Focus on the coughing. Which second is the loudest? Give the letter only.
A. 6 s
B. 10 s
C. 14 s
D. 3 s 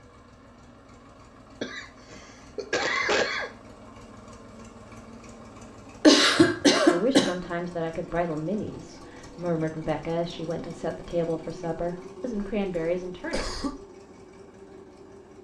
A.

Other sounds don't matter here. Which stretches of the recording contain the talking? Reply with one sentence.
You can hear the talking from 6.8 to 13.4 s.